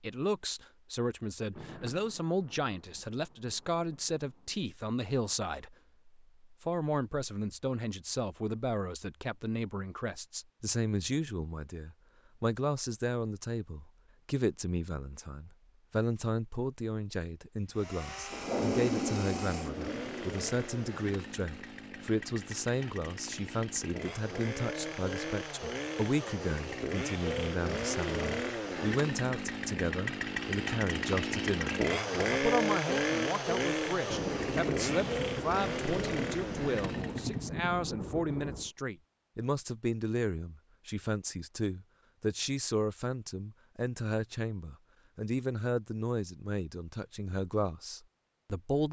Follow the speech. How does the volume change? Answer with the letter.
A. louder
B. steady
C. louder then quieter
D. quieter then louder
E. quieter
B.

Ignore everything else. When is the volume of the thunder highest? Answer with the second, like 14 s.
19 s.